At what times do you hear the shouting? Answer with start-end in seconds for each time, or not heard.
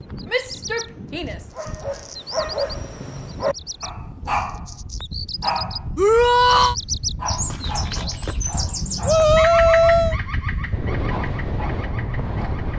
0.3-1.4, 6.0-6.8, 9.1-10.2.